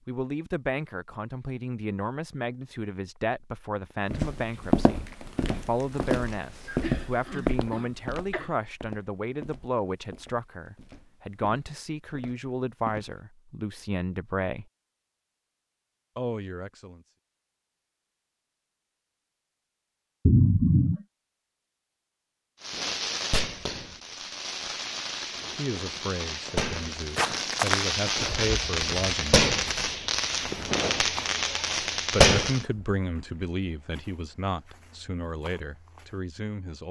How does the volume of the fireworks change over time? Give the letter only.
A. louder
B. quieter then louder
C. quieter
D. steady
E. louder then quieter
A.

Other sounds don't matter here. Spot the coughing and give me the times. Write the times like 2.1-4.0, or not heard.
6.8-8.5, 20.2-21.0.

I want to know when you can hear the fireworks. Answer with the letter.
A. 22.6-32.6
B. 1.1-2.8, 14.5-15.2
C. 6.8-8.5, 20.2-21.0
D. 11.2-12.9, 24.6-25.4
A.